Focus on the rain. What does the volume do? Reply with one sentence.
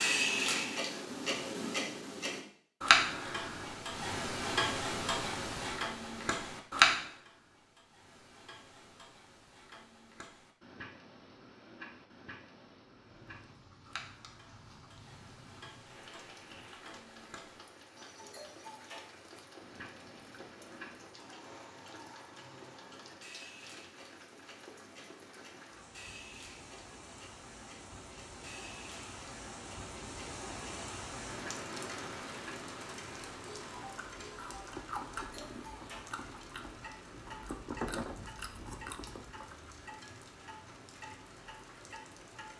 The volume of the rain goes up, then down.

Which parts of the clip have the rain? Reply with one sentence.
You can hear the rain from 12.9 to 42.5 s.